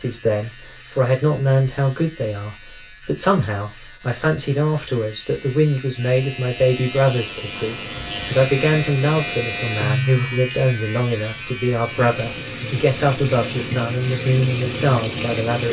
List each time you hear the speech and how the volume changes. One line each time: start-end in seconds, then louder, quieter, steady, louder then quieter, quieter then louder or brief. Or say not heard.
0.0-15.6 steady.